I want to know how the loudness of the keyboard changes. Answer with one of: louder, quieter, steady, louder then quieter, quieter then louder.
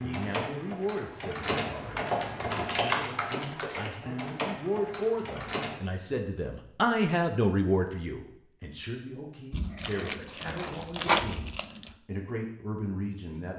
louder then quieter.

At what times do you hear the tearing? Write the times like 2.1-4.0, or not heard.
9.5-11.9.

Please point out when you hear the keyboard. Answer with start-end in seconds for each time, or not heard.
0.0-5.8.